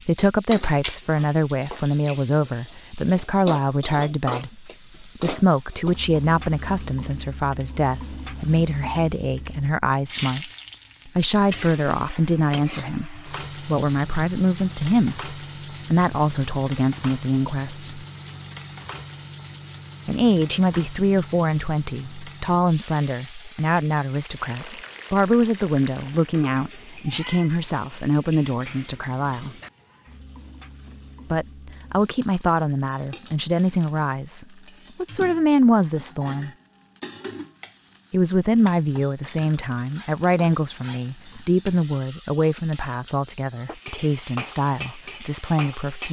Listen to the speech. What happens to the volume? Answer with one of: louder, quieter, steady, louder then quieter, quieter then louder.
steady.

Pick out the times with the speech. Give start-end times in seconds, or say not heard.
0.1-18.1, 20.1-29.6, 31.3-36.5, 38.1-46.0.